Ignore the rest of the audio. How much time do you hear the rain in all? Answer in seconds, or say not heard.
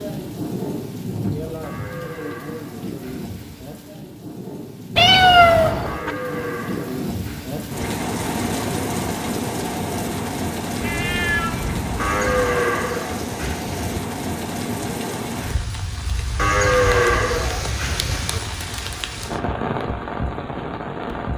21 s.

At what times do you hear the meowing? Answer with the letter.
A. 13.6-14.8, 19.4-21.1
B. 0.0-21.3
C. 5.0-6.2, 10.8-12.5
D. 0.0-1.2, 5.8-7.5
C.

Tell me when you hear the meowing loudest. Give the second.
5 s.